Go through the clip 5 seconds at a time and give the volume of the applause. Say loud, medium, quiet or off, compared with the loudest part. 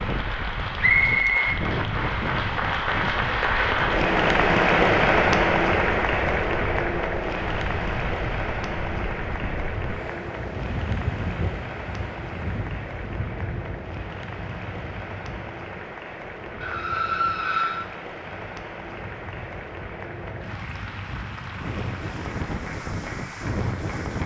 loud, loud, quiet, quiet, quiet.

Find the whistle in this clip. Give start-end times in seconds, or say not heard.
0.8-1.4.